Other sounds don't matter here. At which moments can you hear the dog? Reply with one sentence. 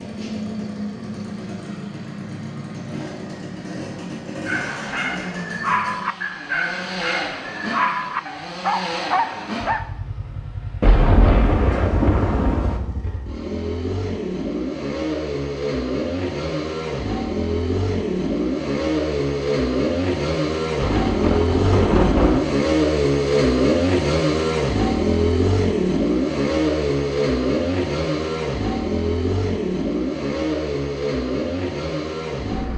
You can hear the dog from 4.5 to 9.8 s.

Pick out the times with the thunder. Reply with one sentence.
You can hear the thunder from 10.8 to 12.8 s and from 20.8 to 22.4 s.